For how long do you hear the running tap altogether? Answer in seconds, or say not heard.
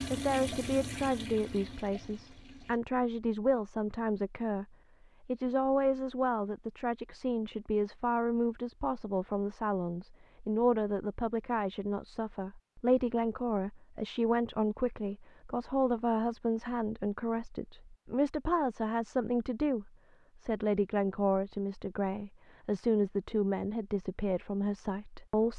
3 s.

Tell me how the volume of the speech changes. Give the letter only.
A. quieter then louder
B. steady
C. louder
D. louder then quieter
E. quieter
B.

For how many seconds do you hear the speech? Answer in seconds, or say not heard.
25 s.